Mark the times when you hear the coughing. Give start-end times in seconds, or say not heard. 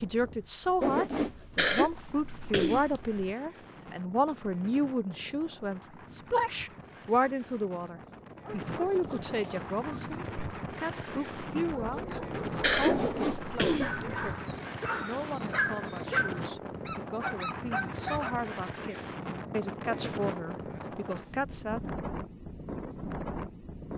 1.6-3.3, 12.6-14.1.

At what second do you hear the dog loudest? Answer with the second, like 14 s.
16 s.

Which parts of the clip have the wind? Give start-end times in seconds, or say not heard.
0.0-23.9.